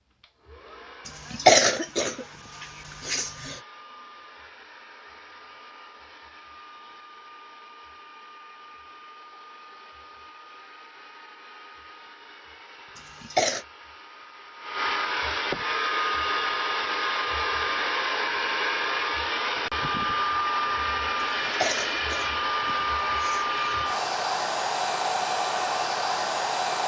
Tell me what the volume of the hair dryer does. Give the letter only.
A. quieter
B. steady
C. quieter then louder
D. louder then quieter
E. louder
E.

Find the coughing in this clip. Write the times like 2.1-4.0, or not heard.
1.1-3.5, 12.9-13.7, 21.2-23.9.